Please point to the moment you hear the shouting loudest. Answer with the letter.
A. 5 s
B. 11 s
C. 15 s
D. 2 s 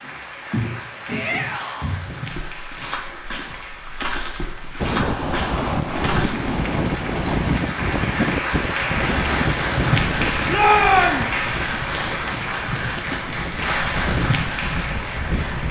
B.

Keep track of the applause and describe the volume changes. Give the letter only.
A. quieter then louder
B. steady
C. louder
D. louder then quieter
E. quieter
C.